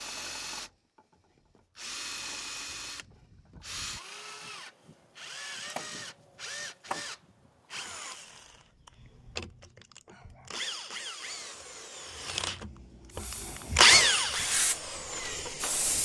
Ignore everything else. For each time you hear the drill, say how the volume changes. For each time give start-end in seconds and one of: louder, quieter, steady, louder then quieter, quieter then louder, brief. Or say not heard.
0.0-15.8 louder.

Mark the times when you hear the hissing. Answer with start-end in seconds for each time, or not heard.
13.1-16.0.